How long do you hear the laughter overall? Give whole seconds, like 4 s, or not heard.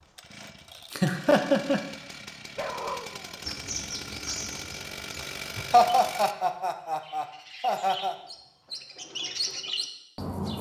3 s.